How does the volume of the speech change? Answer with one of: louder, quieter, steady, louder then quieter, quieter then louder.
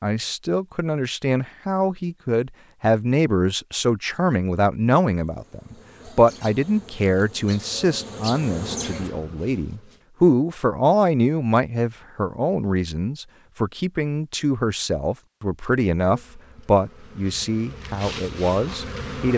steady.